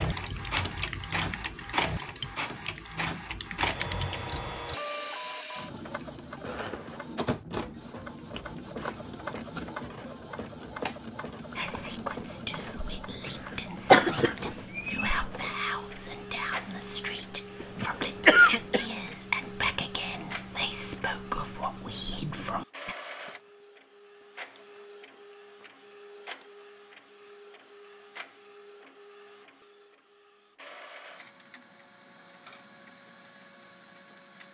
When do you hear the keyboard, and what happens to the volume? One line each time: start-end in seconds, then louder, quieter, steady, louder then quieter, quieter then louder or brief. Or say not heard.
0.0-4.3 quieter then louder.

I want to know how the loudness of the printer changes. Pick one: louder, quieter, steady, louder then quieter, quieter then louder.
quieter.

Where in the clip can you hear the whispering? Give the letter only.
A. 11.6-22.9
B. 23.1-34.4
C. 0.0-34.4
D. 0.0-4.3
A.